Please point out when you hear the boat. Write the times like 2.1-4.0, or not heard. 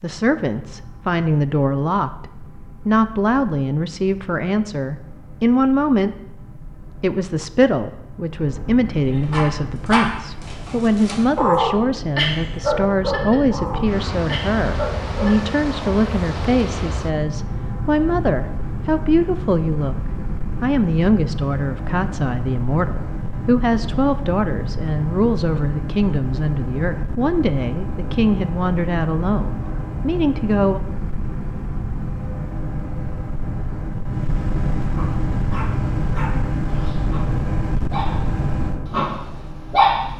0.0-40.1.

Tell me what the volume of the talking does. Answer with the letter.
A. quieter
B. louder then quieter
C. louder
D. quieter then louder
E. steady
E.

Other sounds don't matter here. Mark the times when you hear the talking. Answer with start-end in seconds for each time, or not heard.
0.0-6.2, 7.0-20.0, 20.6-30.8.